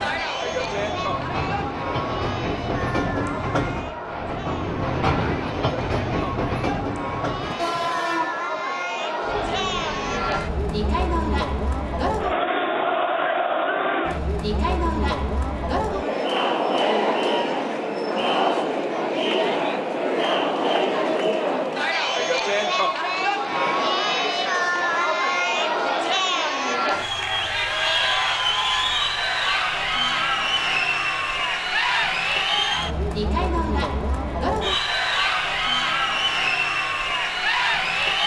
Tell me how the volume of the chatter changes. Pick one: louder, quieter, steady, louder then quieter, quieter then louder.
louder.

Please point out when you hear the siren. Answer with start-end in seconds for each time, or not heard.
not heard.